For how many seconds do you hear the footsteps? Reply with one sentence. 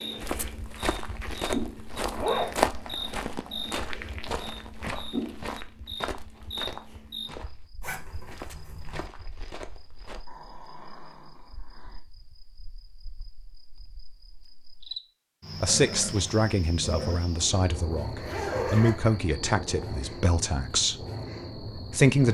The footsteps can be heard for 10 seconds in total.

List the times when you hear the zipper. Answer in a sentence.
The zipper can be heard from 2.1 to 2.5 s, from 7.8 to 9.1 s and from 17.7 to 19.2 s.